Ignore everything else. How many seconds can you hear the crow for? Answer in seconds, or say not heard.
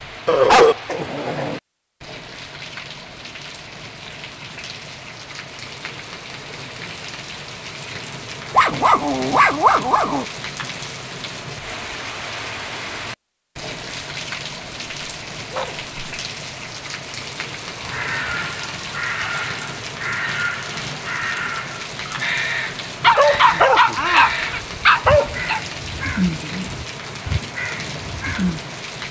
11 s.